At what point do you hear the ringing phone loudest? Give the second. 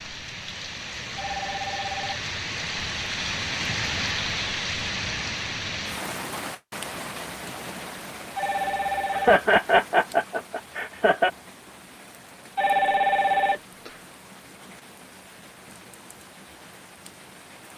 13 s.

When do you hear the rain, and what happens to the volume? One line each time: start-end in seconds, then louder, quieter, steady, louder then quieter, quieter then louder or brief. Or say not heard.
0.0-17.7 quieter.